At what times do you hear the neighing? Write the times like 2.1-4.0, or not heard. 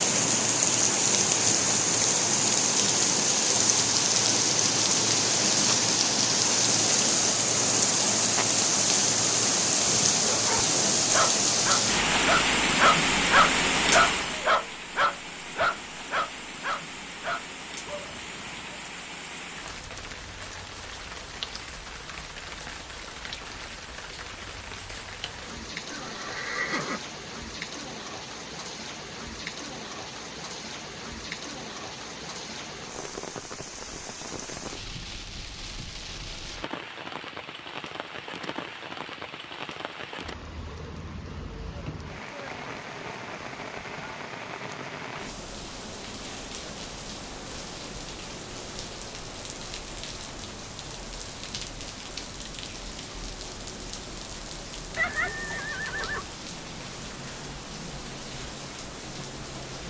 25.9-27.0, 55.0-56.2.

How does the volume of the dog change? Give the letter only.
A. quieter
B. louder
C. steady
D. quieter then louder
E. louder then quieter
E.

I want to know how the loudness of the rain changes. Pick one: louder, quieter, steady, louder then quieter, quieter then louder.
quieter.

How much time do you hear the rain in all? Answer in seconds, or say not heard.
60 s.